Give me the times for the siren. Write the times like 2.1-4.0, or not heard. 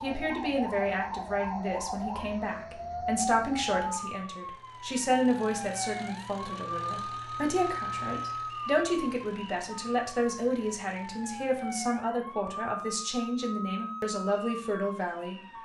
0.0-15.6.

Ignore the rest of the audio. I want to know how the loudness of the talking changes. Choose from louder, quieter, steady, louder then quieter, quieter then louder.
steady.